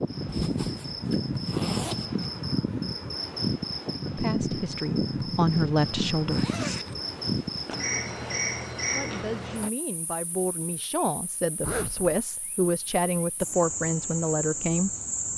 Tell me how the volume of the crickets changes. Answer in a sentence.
The volume of the crickets goes down, then up.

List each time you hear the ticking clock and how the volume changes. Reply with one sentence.
You can't hear the ticking clock here.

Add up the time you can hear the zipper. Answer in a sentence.
You can hear the zipper for 4 seconds altogether.